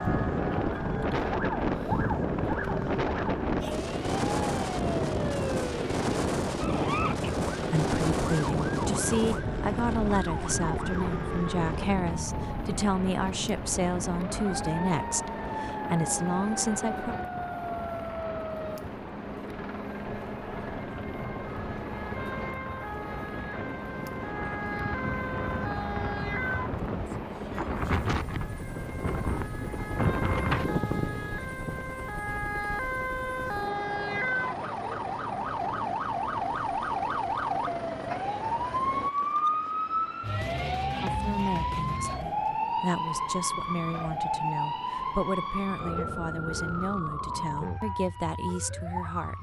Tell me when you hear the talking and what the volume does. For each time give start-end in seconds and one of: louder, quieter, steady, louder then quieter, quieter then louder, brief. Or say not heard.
7.5-17.1 steady
41.0-49.3 steady.